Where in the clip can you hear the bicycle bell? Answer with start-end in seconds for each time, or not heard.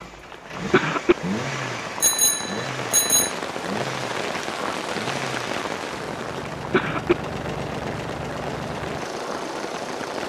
2.0-3.4.